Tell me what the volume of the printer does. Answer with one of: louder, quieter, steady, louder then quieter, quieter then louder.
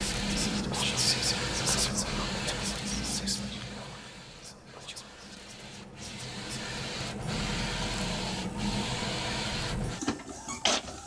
quieter then louder.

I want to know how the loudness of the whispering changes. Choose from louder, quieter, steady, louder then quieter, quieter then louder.
quieter.